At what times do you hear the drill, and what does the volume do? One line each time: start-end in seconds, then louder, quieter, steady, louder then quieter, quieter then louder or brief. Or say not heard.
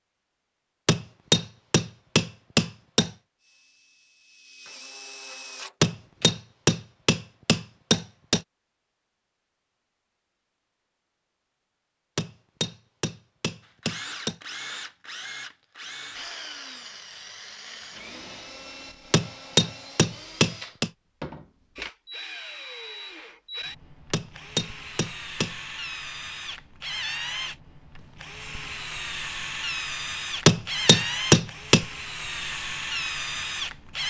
3.4-6.3 brief
13.6-34.0 louder.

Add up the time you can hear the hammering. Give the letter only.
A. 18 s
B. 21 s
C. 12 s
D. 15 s
C.